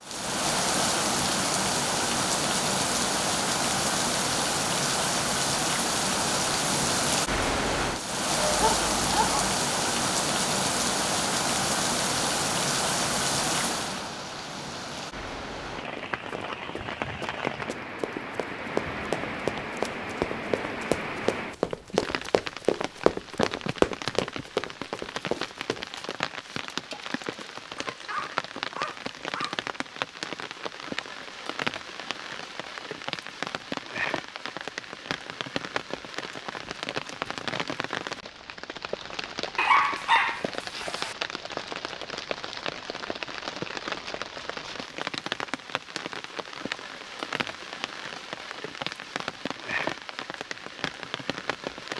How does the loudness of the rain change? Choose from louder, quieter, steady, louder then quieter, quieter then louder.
quieter.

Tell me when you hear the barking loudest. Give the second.
40 s.